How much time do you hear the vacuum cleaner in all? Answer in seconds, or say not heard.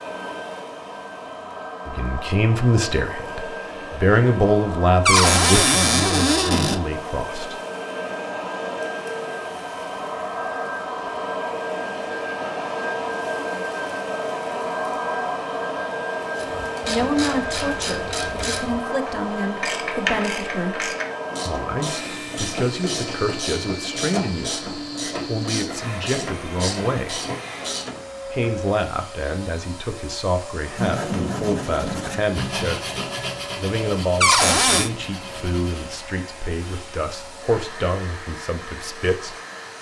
40 s.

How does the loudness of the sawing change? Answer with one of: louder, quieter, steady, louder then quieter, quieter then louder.
quieter.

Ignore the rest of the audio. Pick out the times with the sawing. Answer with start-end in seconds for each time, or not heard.
30.8-35.9.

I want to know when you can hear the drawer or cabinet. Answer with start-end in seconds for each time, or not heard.
5.0-6.8, 34.2-34.9.